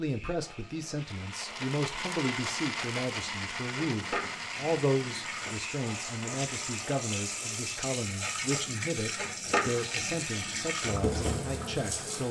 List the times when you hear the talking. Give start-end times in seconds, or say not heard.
0.0-12.2.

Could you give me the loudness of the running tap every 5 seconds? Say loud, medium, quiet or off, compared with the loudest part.
medium, loud, loud.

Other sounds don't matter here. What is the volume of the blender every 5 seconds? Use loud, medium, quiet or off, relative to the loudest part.
loud, medium, off.